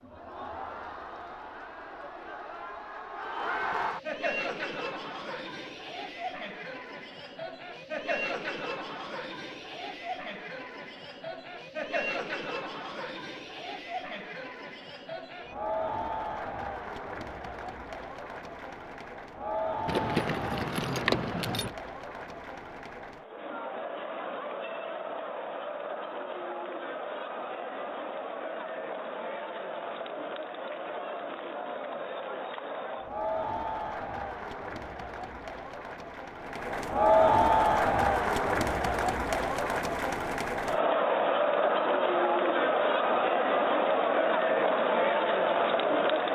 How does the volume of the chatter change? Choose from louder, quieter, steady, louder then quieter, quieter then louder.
louder.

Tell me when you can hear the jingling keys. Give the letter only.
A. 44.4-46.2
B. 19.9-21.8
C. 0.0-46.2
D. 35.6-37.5
B.